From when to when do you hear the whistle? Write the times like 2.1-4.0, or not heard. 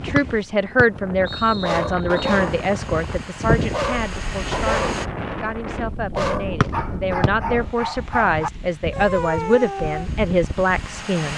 0.1-2.4, 6.6-7.3.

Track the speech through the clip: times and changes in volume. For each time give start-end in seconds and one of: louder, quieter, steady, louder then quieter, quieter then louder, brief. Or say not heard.
0.0-11.3 quieter then louder.